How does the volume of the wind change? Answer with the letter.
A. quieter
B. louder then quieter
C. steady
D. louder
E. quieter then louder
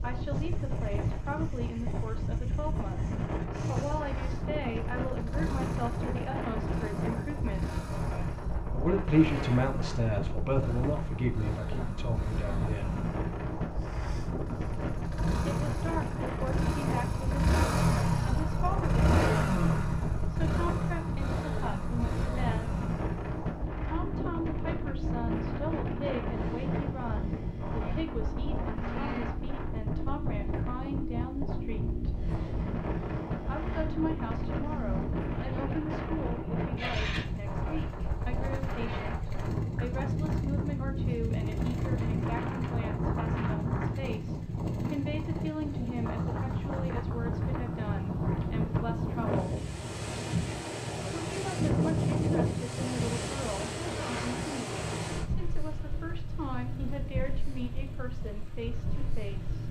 C.